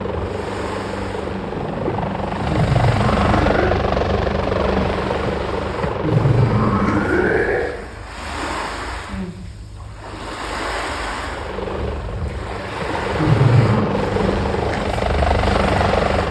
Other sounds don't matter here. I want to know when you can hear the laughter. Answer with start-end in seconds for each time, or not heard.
2.5-3.8, 6.0-7.8, 13.2-13.8.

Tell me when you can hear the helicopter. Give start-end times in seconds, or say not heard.
0.0-7.5, 11.2-16.2.